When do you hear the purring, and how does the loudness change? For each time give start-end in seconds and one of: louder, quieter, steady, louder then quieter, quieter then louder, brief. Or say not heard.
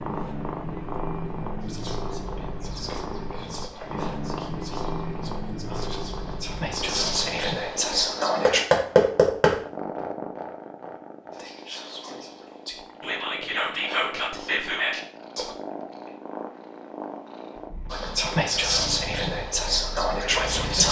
0.0-20.8 quieter.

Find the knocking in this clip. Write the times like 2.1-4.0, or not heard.
8.4-9.6.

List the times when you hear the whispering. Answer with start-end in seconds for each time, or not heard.
1.6-8.6, 11.3-15.6, 17.9-20.8.